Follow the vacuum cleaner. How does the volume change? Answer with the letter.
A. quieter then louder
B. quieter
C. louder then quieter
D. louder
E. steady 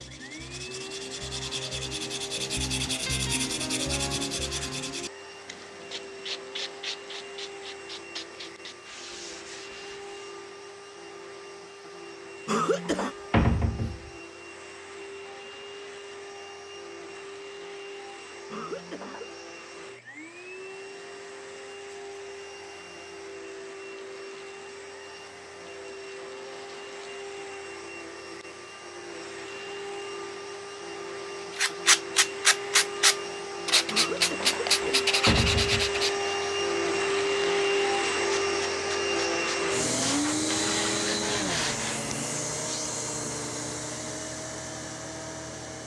D.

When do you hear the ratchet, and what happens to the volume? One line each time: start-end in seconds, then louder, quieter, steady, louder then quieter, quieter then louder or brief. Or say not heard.
not heard.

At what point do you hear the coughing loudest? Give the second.
13 s.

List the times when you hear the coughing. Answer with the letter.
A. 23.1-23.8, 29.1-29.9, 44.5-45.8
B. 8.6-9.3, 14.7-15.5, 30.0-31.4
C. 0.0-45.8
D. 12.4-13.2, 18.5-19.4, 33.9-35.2
D.